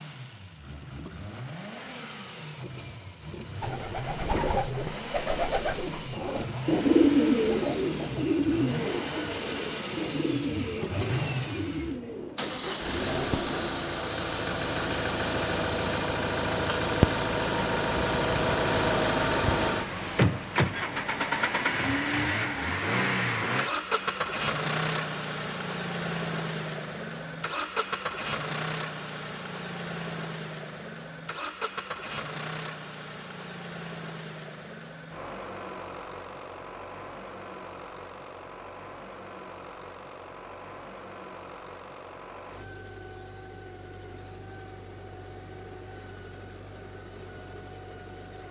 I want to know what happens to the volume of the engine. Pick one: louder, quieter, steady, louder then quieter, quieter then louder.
louder then quieter.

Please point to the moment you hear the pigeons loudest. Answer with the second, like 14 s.
7 s.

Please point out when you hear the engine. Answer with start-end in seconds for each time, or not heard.
0.0-48.4.